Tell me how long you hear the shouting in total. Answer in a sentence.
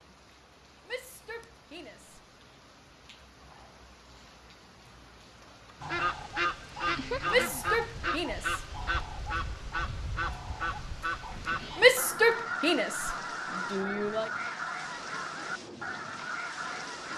The shouting can be heard for 5 seconds in total.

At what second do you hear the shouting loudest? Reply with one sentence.
The loudest moment of the shouting is at 12 seconds.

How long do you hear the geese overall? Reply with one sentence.
You can hear the geese for 11 seconds altogether.